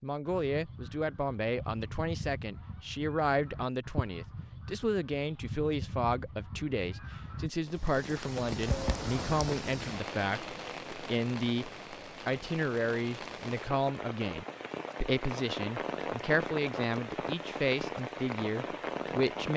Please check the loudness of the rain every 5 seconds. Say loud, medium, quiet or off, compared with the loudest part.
off, loud, medium, loud.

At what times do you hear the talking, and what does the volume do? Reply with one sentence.
The talking can be heard from 0.0 to 19.5 s, at a steady volume.